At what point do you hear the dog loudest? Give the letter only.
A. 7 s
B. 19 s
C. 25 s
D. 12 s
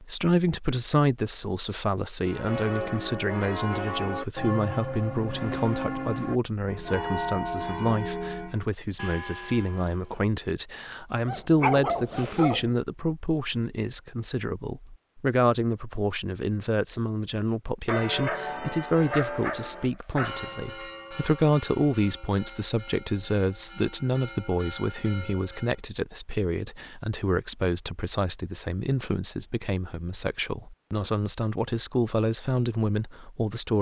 D.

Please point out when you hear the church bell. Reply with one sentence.
The church bell can be heard from 2.2 to 10.2 s and from 17.9 to 25.8 s.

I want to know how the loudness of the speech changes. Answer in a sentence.
The volume of the speech stays about the same.